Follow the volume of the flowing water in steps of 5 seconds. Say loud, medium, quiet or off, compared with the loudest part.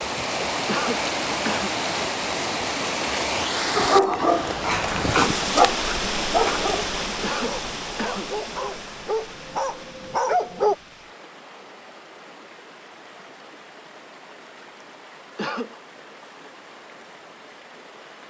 loud, loud, quiet, quiet.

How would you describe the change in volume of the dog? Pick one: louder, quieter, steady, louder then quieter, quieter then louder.
quieter then louder.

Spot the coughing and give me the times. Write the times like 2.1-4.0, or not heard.
0.7-1.8, 7.2-8.3, 15.3-15.8.